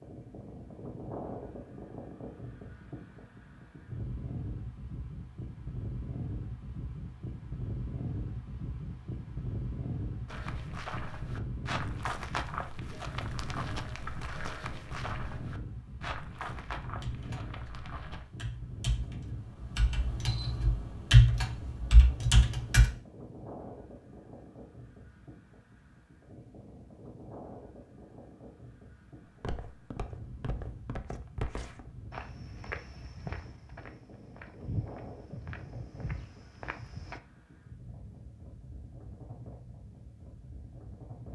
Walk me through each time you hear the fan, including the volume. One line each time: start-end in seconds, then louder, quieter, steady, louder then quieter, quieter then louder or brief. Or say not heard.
0.0-41.2 quieter.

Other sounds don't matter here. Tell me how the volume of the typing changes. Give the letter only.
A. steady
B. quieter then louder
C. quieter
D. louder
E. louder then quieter
E.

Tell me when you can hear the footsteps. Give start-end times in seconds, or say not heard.
10.2-18.2, 29.2-37.2.